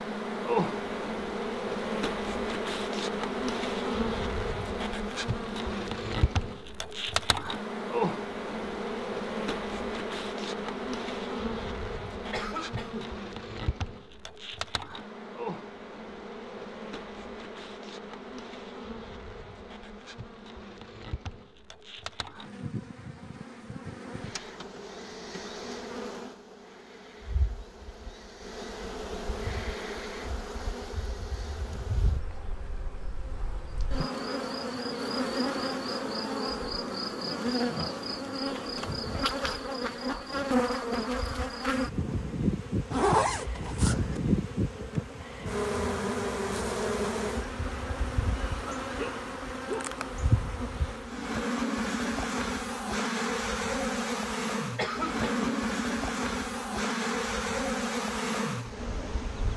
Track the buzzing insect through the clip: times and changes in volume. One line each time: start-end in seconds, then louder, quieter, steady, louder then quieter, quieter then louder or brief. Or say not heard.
0.0-59.5 quieter then louder.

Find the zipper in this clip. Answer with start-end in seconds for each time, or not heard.
42.9-44.2.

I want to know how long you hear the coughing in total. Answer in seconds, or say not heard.
2 s.